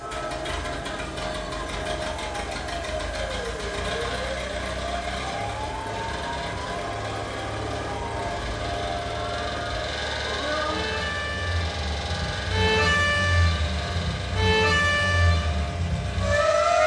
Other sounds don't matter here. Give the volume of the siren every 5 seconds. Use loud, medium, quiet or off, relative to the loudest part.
quiet, quiet, loud, loud.